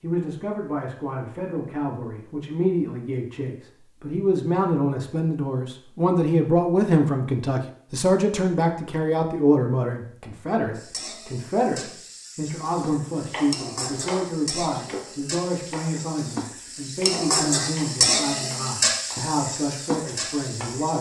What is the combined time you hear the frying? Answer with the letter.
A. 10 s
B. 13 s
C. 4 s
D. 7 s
A.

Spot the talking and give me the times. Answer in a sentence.
The talking can be heard from 0.0 to 20.9 s.